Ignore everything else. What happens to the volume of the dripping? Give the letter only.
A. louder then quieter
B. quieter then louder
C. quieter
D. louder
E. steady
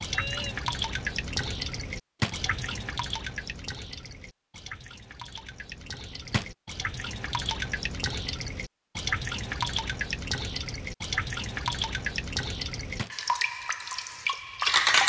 B.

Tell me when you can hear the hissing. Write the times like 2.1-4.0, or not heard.
13.0-15.0.